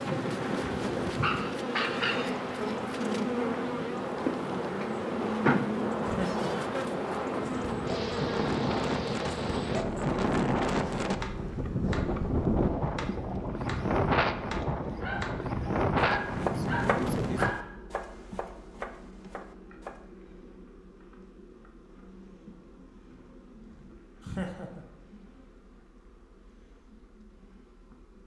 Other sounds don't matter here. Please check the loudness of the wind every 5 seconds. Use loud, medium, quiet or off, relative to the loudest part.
medium, loud, loud, loud, off, off.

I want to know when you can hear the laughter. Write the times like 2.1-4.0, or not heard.
6.0-6.5, 24.2-24.9.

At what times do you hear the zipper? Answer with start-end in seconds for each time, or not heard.
not heard.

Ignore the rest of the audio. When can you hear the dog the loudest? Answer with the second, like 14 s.
2 s.